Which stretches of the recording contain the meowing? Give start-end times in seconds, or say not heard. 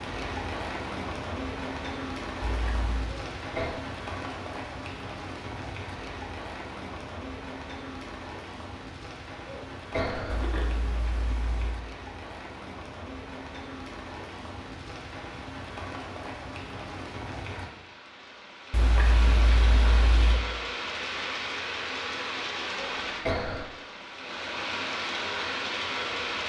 2.4-3.1, 10.2-11.8, 18.7-20.4.